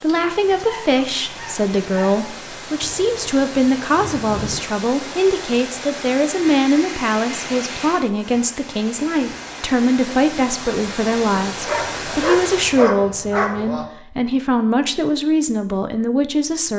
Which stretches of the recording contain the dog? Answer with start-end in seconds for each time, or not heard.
0.1-2.2, 11.4-13.8.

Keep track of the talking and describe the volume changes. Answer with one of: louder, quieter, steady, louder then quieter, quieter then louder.
steady.